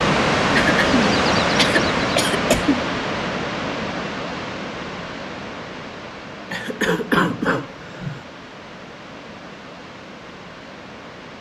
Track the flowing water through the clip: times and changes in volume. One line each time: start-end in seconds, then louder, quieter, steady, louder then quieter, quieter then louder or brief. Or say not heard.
0.0-11.3 quieter.